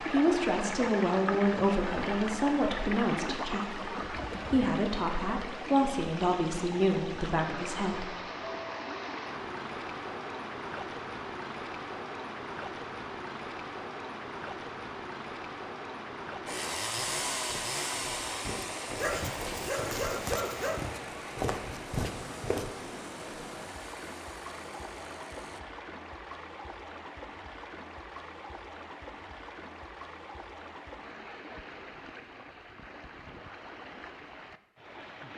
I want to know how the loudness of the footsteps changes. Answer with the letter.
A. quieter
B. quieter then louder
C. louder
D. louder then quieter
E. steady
C.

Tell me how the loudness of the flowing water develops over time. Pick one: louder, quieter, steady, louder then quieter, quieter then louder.
quieter.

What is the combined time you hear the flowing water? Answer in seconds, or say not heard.
35 s.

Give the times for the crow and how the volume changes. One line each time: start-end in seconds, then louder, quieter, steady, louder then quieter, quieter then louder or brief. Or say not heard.
not heard.